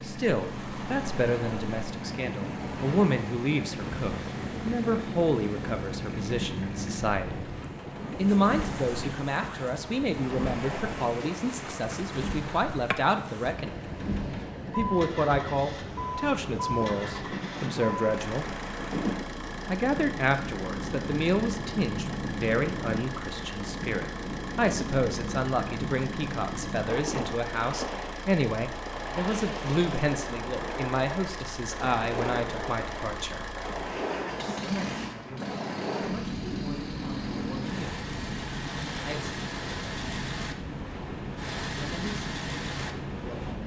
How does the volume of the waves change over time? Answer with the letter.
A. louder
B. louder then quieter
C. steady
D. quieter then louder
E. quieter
C.